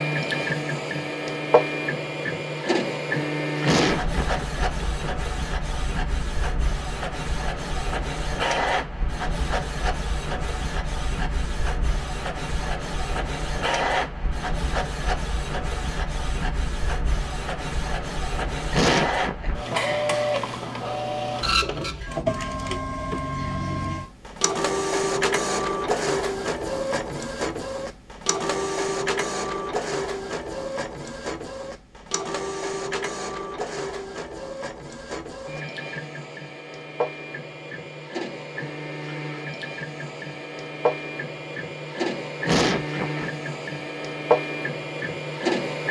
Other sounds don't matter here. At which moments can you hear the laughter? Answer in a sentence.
You can hear the laughter from 3.6 to 5.0 s, from 18.7 to 20.1 s and from 42.5 to 43.3 s.